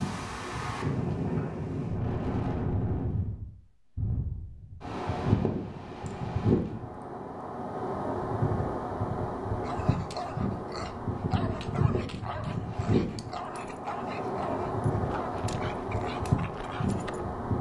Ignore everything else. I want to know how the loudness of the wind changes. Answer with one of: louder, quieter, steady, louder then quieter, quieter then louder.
steady.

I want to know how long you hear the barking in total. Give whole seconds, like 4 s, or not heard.
8 s.